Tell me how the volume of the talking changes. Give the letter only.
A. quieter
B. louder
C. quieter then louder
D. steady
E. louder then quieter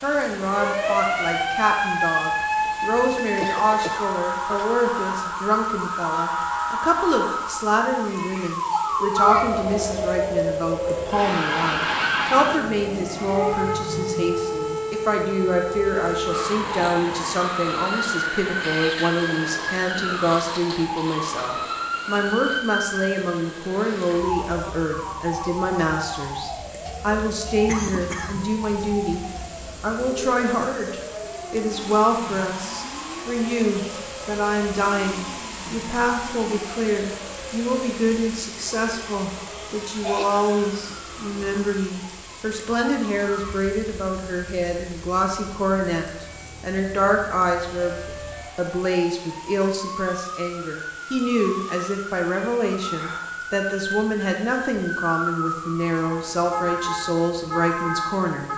D.